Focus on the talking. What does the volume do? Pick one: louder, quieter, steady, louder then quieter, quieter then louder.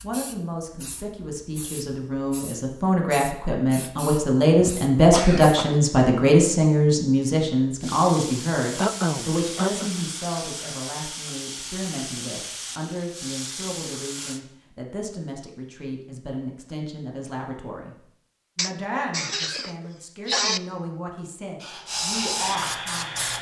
louder then quieter.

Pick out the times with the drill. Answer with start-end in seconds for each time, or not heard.
21.6-23.3.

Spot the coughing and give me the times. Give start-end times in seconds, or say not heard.
4.5-5.8, 8.8-9.9, 18.6-20.6.